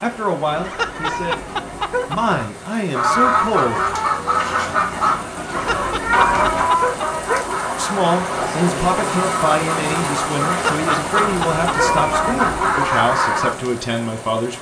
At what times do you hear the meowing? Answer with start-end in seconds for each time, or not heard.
0.5-2.5, 5.5-6.7, 11.2-12.8.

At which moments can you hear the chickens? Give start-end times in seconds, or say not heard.
2.9-13.6.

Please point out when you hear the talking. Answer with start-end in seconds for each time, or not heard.
0.0-3.8, 7.8-14.5.